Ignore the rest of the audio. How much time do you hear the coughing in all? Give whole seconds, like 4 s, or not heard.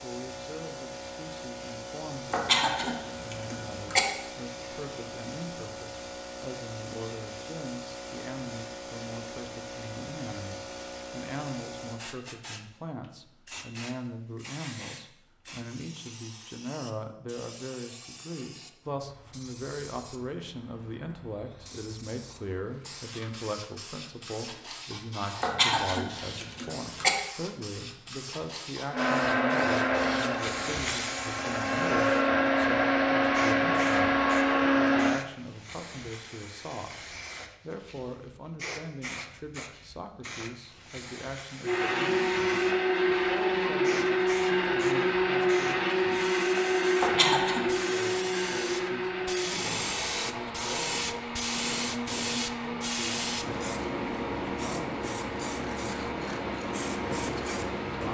4 s.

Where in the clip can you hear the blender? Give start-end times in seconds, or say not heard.
28.9-35.2, 41.6-58.0.